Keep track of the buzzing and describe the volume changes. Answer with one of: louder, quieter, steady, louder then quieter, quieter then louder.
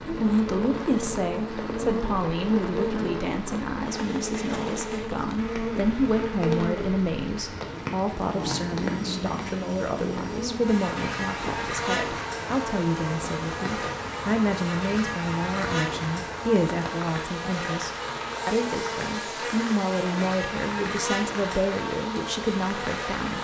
steady.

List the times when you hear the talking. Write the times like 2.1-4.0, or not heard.
0.0-23.3.